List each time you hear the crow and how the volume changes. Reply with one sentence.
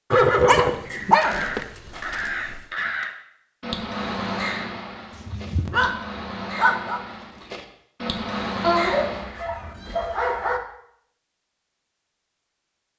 The crow can be heard from 1.1 to 9.4 s, getting quieter then louder.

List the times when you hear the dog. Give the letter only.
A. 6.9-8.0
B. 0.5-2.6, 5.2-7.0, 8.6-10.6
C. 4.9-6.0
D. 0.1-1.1
B.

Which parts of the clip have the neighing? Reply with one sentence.
You can hear the neighing from 0.1 to 1.1 s.